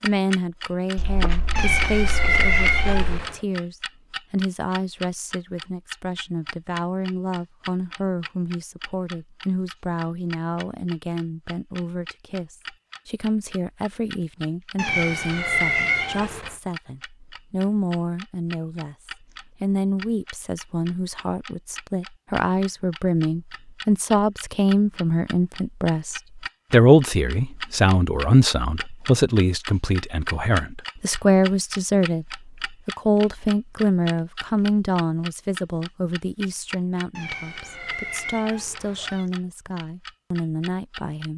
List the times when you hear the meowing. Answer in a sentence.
The meowing can be heard from 1.6 to 3.4 s, from 14.8 to 16.6 s and from 37.1 to 39.2 s.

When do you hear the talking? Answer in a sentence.
The talking can be heard from 0.0 to 41.3 s.